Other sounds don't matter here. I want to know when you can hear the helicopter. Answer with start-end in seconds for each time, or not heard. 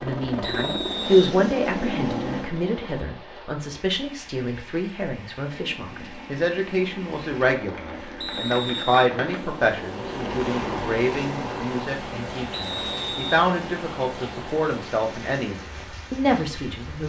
0.0-3.0, 5.4-17.0.